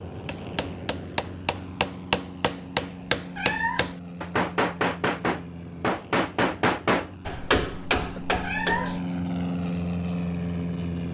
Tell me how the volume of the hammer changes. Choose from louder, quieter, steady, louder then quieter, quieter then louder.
steady.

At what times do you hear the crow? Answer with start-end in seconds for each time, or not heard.
not heard.